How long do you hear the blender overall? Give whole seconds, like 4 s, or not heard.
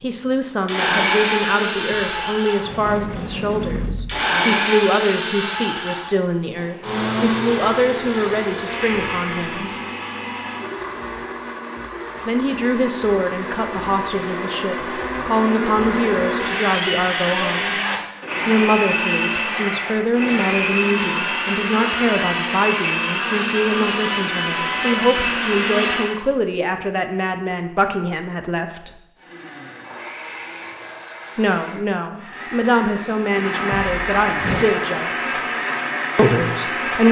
34 s.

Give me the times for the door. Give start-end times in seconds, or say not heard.
1.9-4.2, 33.7-34.7.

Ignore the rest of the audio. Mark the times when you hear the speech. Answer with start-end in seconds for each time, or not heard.
0.0-9.7, 12.2-17.8, 18.4-29.0, 31.4-35.4, 36.1-37.0.